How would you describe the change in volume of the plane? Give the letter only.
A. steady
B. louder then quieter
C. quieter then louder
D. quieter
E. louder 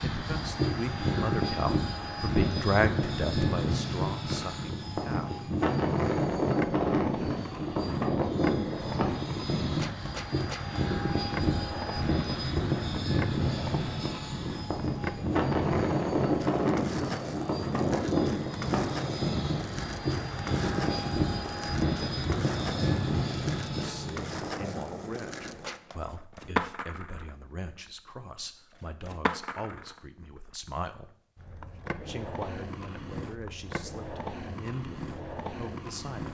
A.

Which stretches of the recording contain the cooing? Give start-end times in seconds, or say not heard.
not heard.